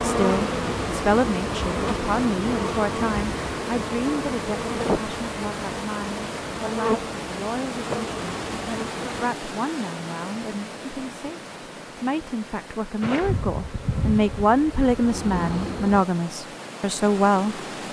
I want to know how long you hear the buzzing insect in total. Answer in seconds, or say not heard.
12 s.